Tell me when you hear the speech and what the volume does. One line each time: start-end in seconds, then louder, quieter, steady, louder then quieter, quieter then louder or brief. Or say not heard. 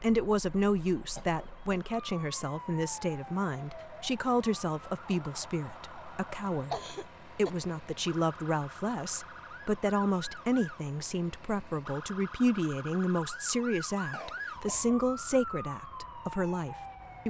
0.0-17.2 steady.